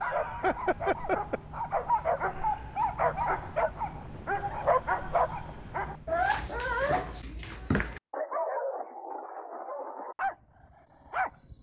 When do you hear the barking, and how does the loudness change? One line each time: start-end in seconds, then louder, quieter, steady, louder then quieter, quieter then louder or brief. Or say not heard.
0.0-11.5 quieter.